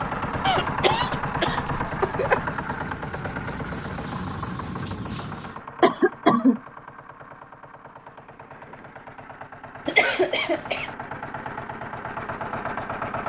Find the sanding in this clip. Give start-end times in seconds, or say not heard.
0.0-5.6.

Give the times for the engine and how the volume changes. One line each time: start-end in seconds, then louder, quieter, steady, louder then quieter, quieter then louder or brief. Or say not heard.
0.0-13.2 quieter then louder.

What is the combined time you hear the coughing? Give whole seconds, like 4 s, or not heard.
4 s.